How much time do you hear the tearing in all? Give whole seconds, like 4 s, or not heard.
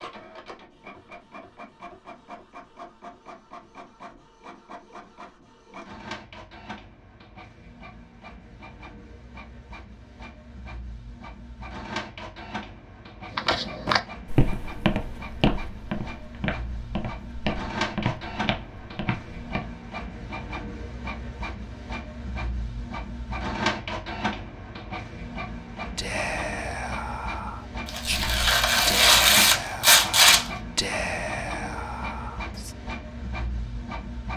3 s.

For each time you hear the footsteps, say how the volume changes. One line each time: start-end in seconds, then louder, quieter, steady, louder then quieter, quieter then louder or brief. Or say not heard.
13.3-19.6 quieter.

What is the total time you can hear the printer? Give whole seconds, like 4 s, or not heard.
34 s.